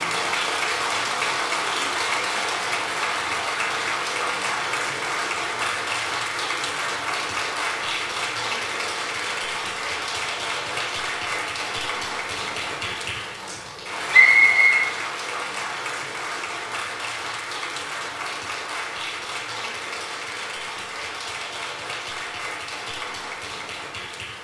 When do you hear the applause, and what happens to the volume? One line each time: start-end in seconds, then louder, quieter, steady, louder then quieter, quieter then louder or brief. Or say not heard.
0.0-24.3 quieter.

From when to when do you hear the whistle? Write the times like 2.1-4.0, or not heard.
14.1-14.9.